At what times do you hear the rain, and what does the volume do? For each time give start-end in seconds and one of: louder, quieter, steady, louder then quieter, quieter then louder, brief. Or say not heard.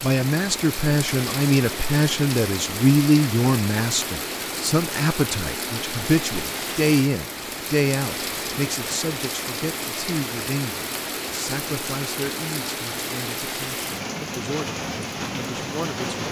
0.0-16.2 steady.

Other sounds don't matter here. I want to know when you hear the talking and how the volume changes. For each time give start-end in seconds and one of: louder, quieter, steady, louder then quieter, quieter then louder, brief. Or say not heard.
0.0-16.2 quieter.